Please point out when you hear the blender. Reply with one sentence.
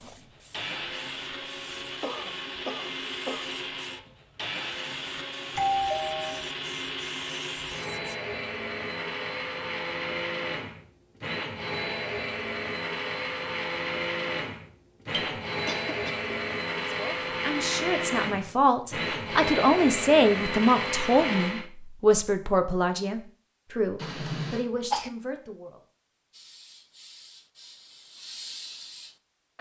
You can hear the blender from 0.0 to 21.7 s.